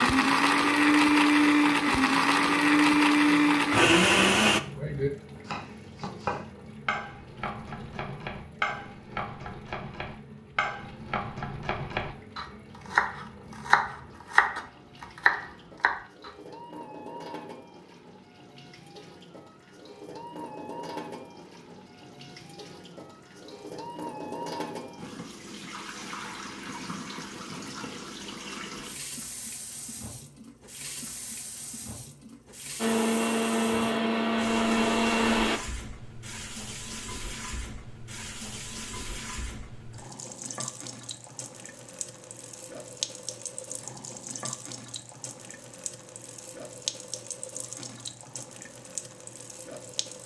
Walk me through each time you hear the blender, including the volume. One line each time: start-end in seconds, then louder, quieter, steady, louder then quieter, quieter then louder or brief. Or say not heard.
0.0-4.6 steady
32.8-35.6 brief.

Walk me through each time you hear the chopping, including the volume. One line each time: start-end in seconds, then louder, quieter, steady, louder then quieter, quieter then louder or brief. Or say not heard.
4.8-16.3 louder.